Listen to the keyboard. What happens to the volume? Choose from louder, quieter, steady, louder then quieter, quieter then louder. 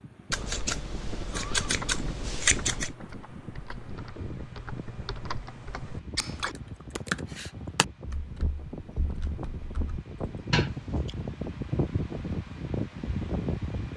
louder then quieter.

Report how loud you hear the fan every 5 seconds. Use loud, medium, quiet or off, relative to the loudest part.
medium, medium, loud.